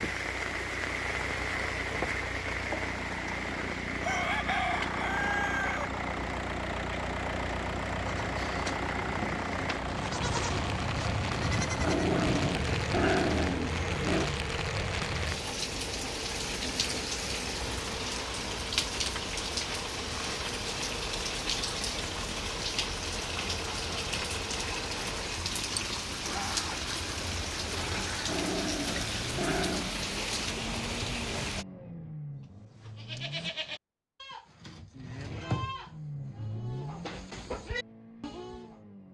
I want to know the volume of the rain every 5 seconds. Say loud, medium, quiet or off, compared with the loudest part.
loud, medium, loud, loud, loud, loud, loud, off.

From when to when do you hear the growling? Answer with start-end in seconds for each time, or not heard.
11.8-14.3, 28.2-29.9.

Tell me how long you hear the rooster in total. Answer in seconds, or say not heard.
2 s.